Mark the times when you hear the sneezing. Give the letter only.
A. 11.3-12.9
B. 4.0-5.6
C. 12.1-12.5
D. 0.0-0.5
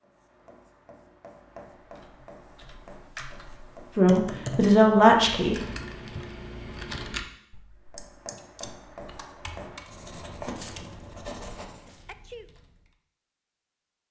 C.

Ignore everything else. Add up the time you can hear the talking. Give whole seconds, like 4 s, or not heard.
2 s.